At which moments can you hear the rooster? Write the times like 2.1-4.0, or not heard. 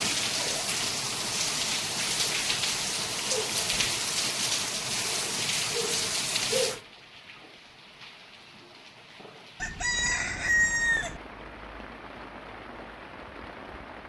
9.6-11.2.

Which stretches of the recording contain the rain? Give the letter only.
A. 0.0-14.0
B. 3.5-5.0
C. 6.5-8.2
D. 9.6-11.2
A.